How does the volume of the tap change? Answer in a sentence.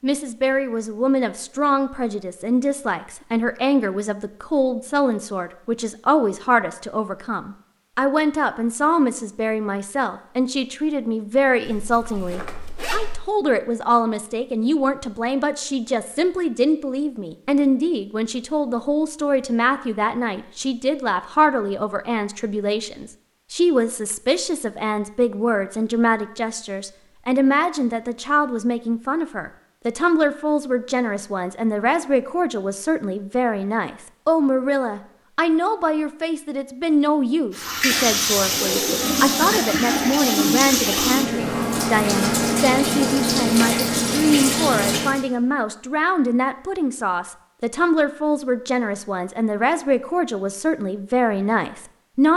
The loudness of the tap stays about the same.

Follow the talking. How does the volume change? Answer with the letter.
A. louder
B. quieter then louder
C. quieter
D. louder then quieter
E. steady
E.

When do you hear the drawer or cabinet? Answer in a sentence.
The drawer or cabinet can't be heard in this clip.